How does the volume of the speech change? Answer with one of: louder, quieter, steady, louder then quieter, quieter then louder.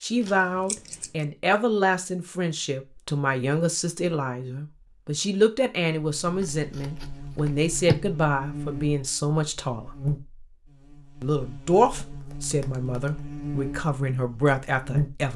steady.